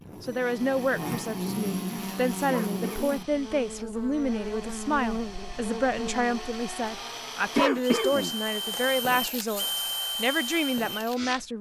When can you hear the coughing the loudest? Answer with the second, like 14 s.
8 s.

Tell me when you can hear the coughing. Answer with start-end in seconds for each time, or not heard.
2.5-3.2, 7.5-8.9.